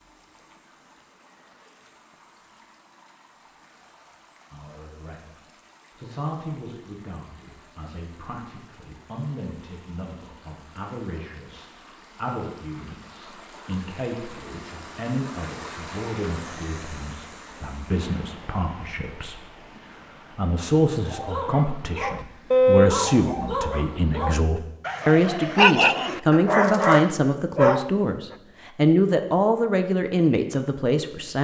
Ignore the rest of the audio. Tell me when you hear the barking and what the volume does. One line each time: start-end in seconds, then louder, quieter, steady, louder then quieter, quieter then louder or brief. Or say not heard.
21.1-27.9 quieter then louder.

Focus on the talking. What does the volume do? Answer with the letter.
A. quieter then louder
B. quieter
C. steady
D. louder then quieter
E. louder
E.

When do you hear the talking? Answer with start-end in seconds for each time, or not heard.
4.5-31.3.